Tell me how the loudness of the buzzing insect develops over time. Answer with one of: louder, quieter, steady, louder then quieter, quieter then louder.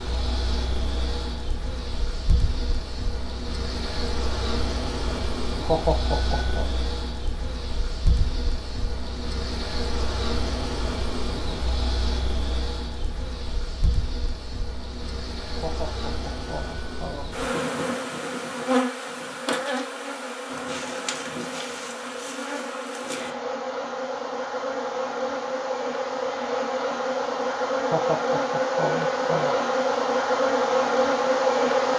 louder.